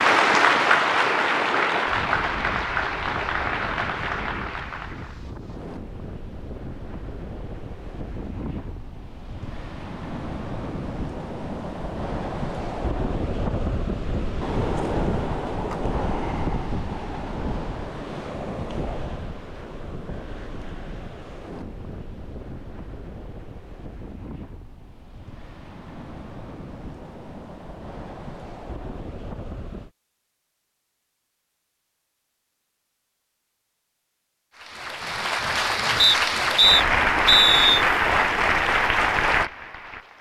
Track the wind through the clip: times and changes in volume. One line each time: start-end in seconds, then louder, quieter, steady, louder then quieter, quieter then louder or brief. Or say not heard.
0.0-29.9 louder then quieter.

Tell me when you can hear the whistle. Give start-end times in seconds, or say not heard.
36.0-37.9.